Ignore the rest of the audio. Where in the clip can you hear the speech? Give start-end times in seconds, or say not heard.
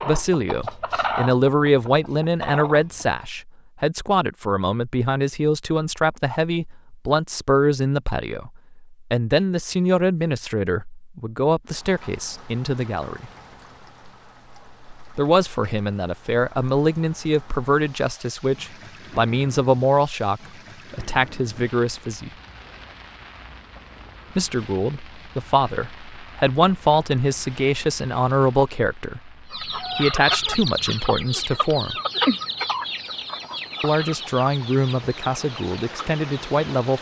0.1-13.3, 15.2-22.3, 24.4-31.9, 33.8-36.9.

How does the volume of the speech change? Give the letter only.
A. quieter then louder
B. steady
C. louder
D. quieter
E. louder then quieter
B.